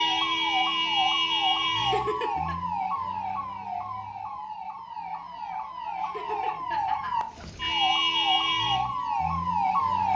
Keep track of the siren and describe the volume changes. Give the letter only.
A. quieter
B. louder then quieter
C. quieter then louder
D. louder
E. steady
C.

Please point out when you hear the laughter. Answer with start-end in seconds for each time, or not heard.
1.8-2.5, 6.0-7.8.